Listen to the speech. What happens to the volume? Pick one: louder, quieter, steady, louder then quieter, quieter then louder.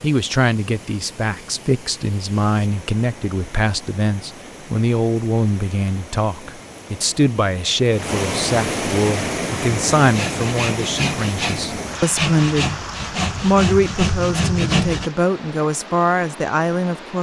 steady.